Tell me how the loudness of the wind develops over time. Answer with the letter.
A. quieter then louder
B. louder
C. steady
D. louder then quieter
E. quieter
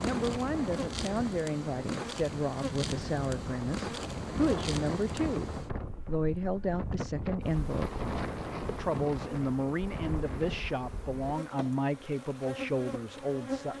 C.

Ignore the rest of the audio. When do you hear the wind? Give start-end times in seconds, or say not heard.
0.0-10.8.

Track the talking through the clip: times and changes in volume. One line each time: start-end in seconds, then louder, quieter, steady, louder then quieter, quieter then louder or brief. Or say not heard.
0.0-7.9 steady
8.7-13.7 steady.